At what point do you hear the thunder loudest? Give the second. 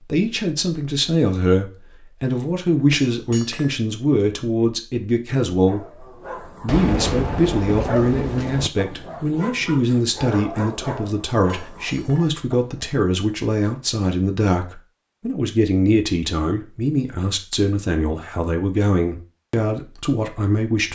7 s.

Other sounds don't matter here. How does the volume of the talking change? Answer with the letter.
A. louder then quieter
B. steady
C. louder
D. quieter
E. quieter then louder
B.